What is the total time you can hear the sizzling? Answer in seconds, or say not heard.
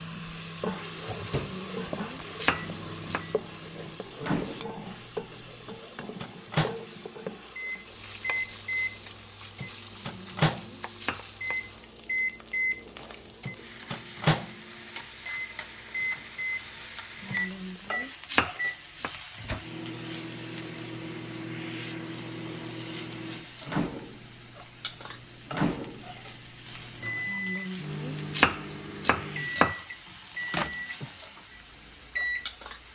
33 s.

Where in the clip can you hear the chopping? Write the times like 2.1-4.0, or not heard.
1.4-3.2, 9.9-11.3, 17.2-19.1, 27.2-29.8.